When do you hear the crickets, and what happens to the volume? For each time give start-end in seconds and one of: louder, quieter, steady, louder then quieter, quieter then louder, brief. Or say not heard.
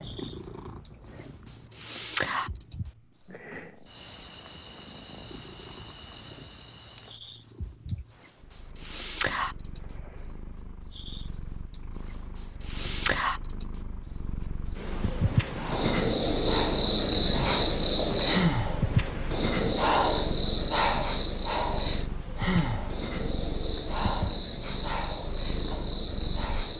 0.1-26.7 louder then quieter.